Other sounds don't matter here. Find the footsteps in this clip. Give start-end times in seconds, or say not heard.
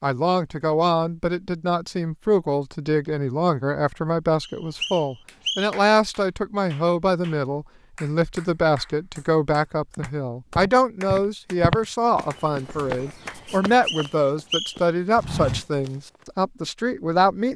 9.9-15.9.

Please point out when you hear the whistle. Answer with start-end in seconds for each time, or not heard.
4.4-5.8, 13.7-14.9.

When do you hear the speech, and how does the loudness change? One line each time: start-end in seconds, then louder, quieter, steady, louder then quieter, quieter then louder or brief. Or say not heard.
0.0-17.5 steady.